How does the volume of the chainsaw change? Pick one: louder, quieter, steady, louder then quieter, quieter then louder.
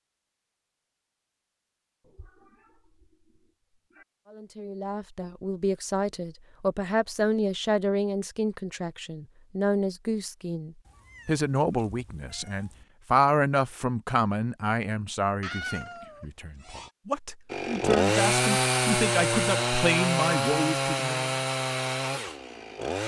quieter.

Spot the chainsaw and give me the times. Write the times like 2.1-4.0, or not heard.
17.5-23.0.